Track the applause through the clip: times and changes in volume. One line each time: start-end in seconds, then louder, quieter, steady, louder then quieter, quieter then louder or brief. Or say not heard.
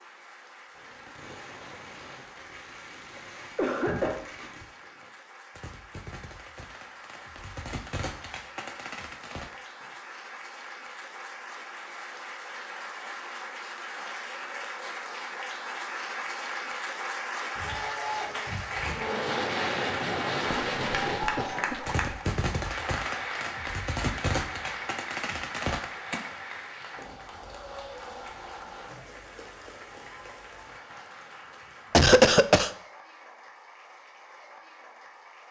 0.0-35.4 louder then quieter.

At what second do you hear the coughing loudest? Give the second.
32 s.